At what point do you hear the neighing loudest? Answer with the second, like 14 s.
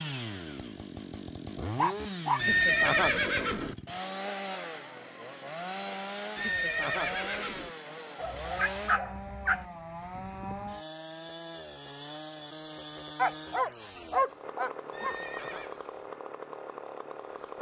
3 s.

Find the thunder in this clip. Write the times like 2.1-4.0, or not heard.
not heard.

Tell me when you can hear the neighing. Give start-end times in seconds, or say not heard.
2.4-3.8, 6.3-7.8, 14.9-15.8.